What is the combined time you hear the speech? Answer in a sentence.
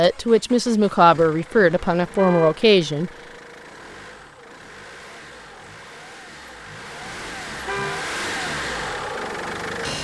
The speech can be heard for 3 seconds in total.